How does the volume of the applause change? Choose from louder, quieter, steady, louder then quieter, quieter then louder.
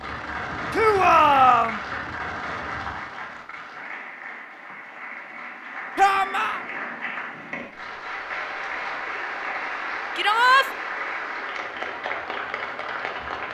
quieter then louder.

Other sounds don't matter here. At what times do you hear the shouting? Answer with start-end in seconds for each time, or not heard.
0.7-1.8, 6.0-6.6, 10.2-10.7.